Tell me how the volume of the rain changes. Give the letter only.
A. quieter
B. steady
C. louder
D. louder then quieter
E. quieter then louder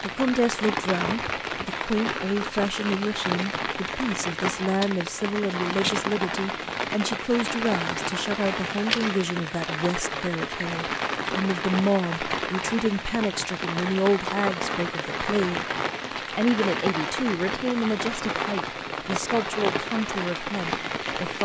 B.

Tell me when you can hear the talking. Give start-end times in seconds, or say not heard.
0.0-15.7, 16.4-21.4.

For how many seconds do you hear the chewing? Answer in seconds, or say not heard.
not heard.